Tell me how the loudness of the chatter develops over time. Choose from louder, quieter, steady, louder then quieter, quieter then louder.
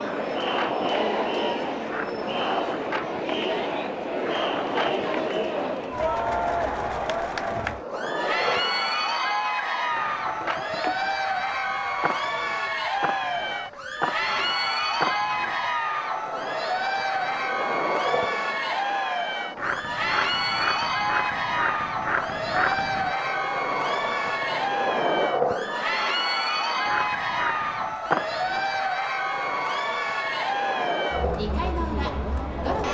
steady.